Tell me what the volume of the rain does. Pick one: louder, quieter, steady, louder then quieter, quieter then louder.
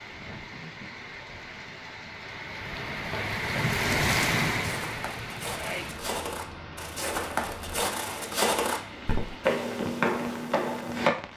louder then quieter.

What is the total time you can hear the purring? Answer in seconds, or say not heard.
not heard.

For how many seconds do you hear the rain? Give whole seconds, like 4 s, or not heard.
11 s.